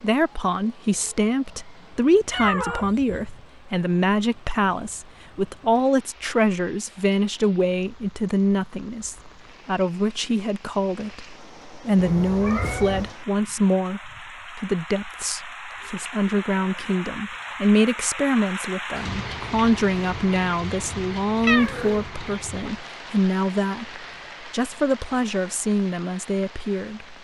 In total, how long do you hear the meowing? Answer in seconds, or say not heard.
3 s.